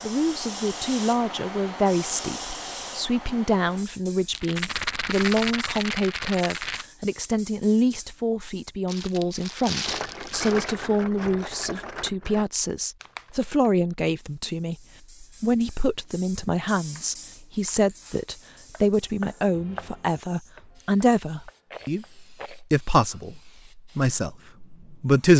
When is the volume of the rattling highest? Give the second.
5 s.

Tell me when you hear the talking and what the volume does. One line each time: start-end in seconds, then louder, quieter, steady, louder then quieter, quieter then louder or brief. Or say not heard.
0.0-25.3 steady.